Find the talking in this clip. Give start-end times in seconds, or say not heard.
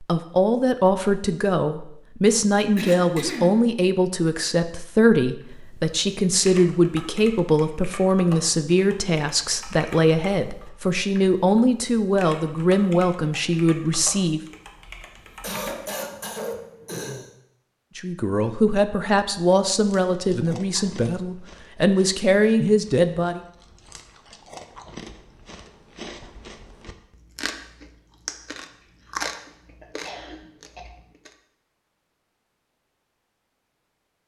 0.0-14.4, 17.9-23.4.